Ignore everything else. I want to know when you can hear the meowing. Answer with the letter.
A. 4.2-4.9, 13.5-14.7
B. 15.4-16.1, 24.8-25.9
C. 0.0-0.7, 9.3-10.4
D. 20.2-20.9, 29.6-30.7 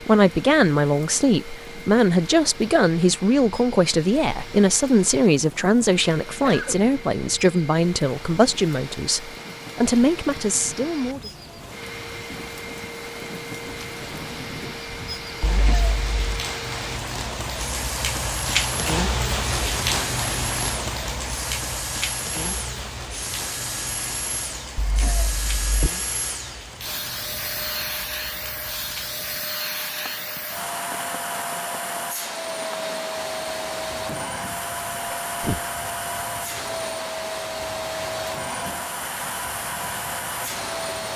B.